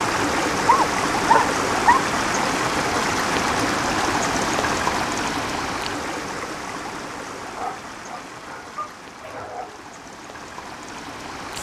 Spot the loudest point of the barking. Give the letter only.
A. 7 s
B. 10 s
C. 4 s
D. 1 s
D.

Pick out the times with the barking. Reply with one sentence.
You can hear the barking from 0.7 to 2.0 s and from 7.5 to 9.8 s.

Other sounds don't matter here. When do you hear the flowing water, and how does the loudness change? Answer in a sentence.
You can hear the flowing water from 0.0 to 11.5 s, getting quieter.